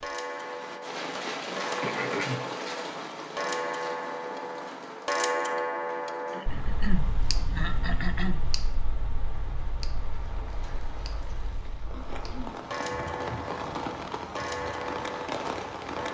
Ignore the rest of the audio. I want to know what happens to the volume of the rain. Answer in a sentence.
The volume of the rain goes down, then up.